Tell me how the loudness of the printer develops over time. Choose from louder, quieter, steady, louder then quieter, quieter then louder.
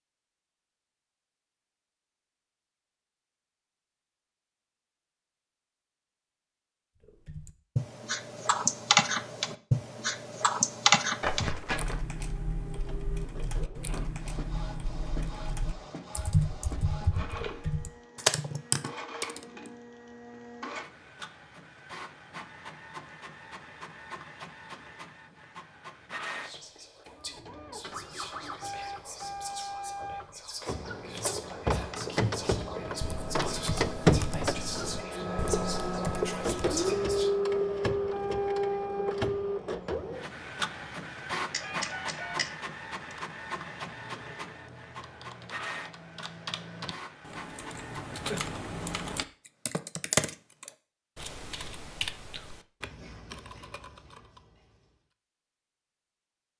louder then quieter.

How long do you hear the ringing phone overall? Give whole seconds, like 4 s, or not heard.
2 s.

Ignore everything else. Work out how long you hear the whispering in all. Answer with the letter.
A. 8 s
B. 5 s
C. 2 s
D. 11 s
D.